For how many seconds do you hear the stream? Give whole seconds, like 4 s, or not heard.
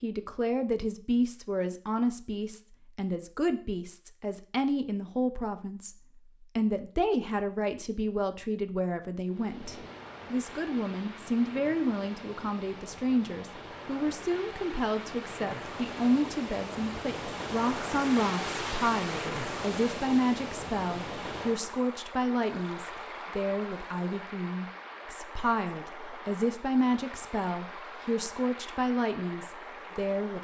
21 s.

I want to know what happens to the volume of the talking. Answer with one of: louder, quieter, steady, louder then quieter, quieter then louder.
steady.